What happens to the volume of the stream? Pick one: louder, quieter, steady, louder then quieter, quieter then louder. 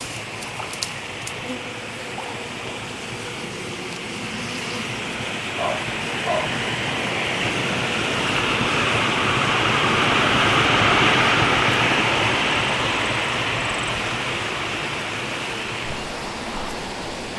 louder then quieter.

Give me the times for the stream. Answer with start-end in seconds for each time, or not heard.
0.0-17.3.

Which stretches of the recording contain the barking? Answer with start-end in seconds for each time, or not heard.
5.5-6.5.